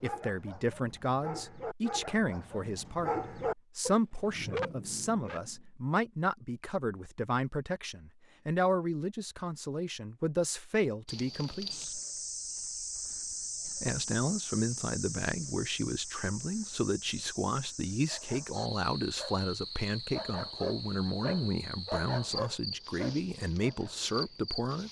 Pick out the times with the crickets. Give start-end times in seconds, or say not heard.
11.1-24.8.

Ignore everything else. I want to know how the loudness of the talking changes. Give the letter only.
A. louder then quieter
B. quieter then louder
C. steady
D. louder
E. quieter
C.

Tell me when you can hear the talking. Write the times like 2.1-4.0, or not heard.
0.0-12.0, 13.7-24.8.